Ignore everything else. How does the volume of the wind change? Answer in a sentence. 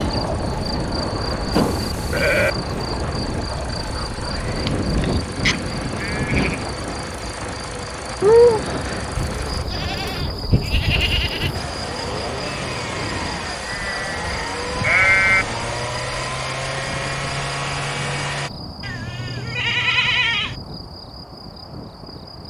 The loudness of the wind goes down.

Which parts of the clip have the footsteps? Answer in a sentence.
You can't hear the footsteps here.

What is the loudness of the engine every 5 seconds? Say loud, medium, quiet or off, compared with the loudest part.
medium, medium, loud, loud, off.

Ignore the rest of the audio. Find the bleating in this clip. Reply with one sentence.
You can hear the bleating from 1.5 to 2.5 s, from 4.7 to 6.7 s, from 9.2 to 11.7 s, from 13.6 to 15.4 s and from 18.8 to 20.6 s.